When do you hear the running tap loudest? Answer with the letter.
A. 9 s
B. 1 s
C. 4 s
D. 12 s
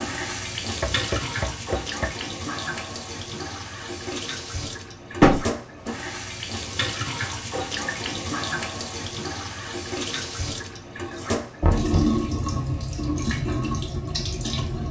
D.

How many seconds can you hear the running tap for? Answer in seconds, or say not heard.
15 s.